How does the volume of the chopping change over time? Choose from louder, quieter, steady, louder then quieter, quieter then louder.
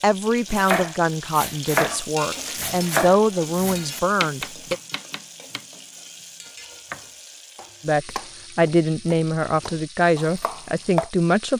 quieter then louder.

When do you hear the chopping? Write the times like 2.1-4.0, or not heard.
0.5-5.8, 6.5-11.1.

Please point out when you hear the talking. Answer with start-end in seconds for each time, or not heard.
0.0-4.8, 7.8-11.5.